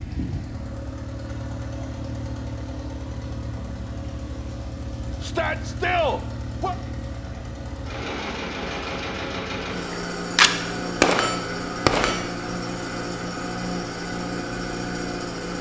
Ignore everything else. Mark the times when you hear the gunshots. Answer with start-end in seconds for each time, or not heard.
9.9-12.3.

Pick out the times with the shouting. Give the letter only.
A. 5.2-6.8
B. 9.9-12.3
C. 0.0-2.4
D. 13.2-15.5
A.